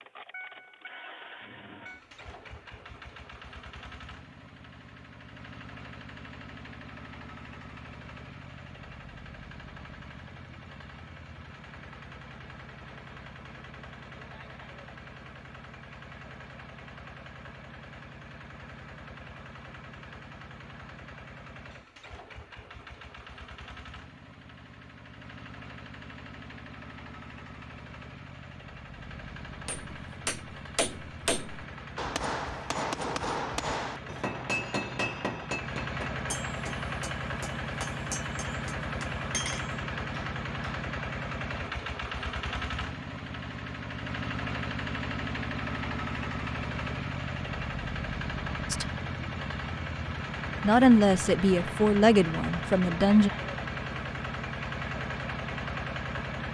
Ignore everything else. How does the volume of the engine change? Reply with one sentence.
The loudness of the engine goes up.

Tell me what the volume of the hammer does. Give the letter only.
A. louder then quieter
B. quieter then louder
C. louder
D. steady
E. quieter
E.